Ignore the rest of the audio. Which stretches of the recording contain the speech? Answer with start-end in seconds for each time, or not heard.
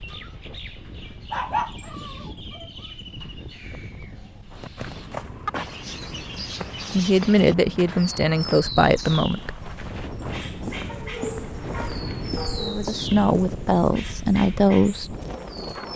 6.3-9.6, 12.6-15.2.